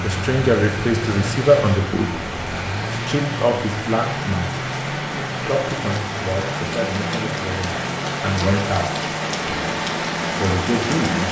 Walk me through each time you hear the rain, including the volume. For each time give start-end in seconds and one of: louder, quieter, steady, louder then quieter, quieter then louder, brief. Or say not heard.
0.0-11.2 louder.